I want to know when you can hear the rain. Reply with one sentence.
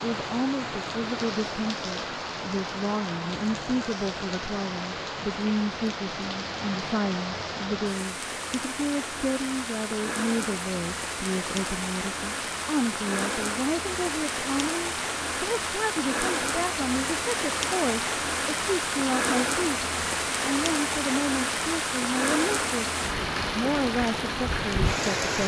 You can hear the rain from 0.0 to 25.4 s.